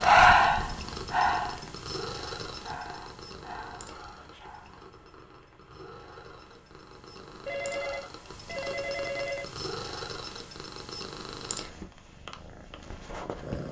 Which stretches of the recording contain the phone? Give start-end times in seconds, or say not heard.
7.5-9.4.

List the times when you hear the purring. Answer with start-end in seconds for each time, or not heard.
0.0-13.6.